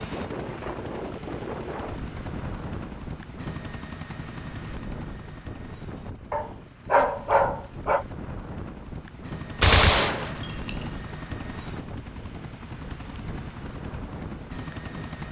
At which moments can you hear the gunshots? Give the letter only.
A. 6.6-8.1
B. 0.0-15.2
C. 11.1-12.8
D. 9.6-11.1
D.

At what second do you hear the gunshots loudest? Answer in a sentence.
The volume of the gunshots peaks at 10 seconds.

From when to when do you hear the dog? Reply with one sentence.
You can hear the dog from 6.3 to 8.1 s.